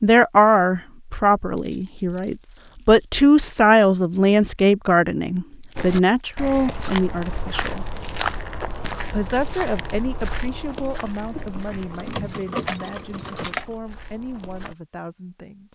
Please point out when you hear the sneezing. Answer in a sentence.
You can't hear the sneezing here.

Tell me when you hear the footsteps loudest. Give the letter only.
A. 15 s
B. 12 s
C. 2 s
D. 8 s
D.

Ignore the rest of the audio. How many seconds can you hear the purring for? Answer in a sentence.
The purring can't be heard in this clip.